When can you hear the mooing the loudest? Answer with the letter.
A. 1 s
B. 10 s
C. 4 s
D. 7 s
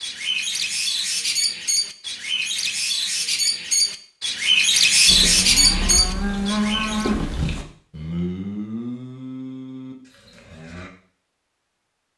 D.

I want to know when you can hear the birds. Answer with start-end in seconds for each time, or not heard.
0.0-7.2.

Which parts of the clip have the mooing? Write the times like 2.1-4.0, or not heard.
5.0-10.9.